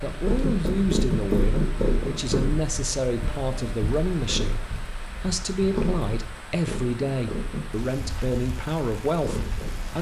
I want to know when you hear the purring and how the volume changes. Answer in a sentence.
The purring can be heard from 0.0 to 9.9 s, getting quieter.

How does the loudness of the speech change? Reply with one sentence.
The volume of the speech stays about the same.